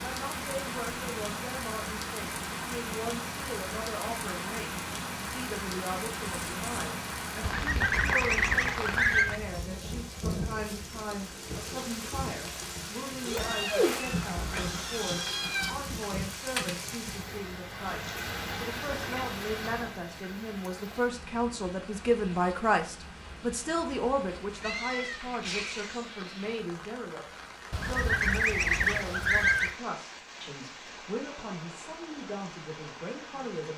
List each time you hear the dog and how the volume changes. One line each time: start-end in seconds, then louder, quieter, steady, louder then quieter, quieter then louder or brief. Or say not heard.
not heard.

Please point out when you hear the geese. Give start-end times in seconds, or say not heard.
7.4-9.4, 27.7-29.8.